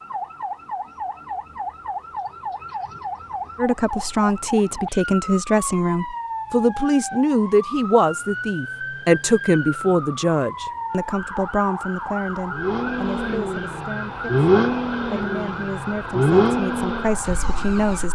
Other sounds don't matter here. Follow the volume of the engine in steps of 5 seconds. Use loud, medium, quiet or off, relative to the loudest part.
off, off, loud, loud.